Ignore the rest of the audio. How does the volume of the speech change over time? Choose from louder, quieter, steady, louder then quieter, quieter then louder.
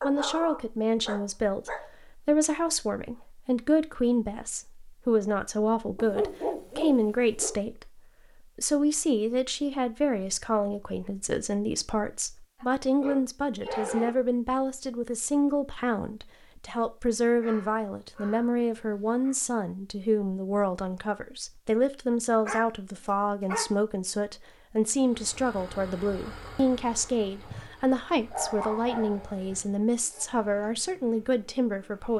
steady.